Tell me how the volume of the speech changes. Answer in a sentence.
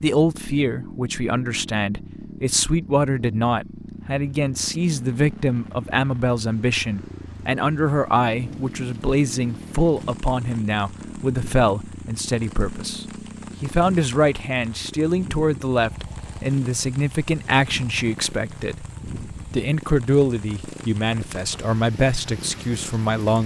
The loudness of the speech stays about the same.